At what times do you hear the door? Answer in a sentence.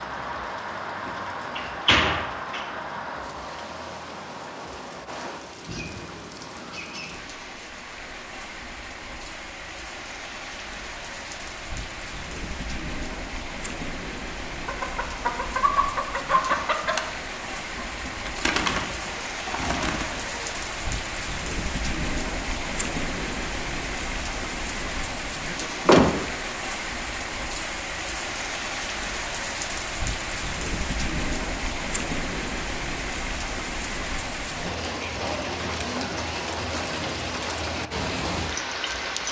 You can hear the door from 1.1 to 2.6 s and from 25.6 to 26.2 s.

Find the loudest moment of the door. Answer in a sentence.
The loudest moment of the door is at 26 seconds.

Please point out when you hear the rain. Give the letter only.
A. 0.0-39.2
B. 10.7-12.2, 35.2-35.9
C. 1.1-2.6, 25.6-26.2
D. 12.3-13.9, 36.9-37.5
A.